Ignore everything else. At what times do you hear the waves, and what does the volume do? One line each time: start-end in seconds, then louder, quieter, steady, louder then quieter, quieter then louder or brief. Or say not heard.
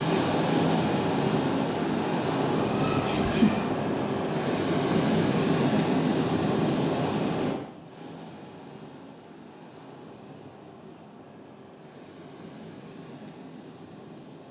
0.0-14.4 quieter.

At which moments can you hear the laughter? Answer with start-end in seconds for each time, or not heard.
2.6-3.8.